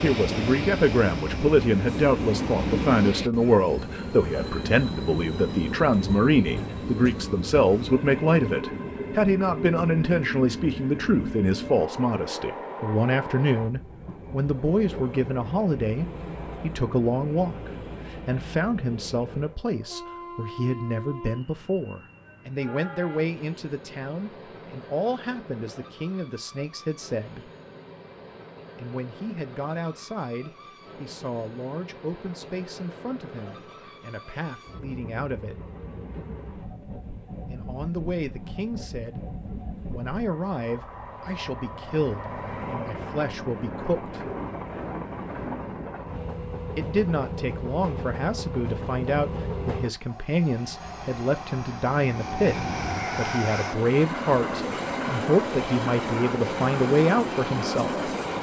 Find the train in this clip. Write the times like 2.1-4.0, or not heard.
0.0-58.3.